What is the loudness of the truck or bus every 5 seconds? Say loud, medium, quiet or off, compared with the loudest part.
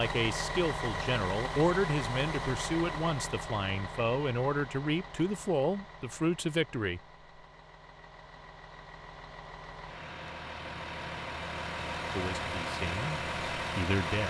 loud, quiet, loud.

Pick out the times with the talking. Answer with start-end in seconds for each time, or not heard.
0.0-7.0, 12.1-14.2.